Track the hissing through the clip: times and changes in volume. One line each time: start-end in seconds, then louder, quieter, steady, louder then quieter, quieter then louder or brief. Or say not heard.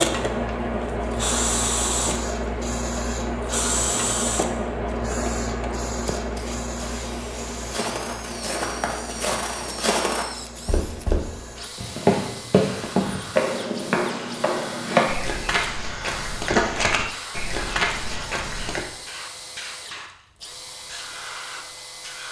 0.0-22.2 quieter.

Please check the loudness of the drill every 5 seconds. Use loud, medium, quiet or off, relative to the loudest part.
loud, quiet, quiet, quiet, quiet.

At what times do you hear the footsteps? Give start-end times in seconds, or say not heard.
7.7-18.9.